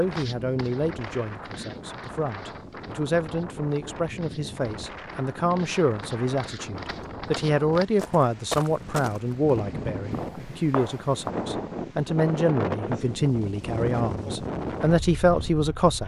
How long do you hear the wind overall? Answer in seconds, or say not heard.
16 s.